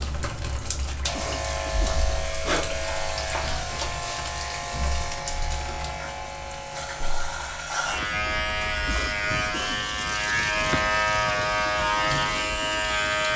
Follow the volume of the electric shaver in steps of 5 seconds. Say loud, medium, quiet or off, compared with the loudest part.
medium, medium, loud.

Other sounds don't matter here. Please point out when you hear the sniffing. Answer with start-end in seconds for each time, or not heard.
1.1-2.0, 8.8-9.8.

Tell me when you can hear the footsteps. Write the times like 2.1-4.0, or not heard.
not heard.